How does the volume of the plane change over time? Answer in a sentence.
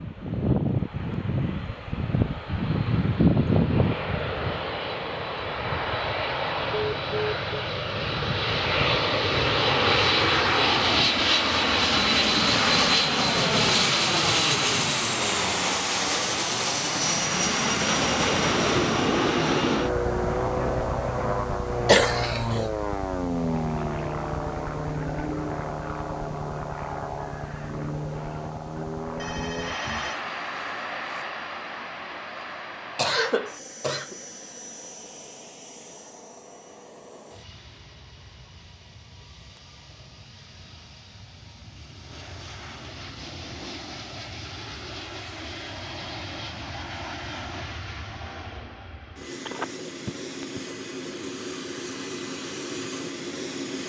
The loudness of the plane goes down, then up.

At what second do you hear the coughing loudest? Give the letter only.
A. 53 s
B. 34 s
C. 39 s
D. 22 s
D.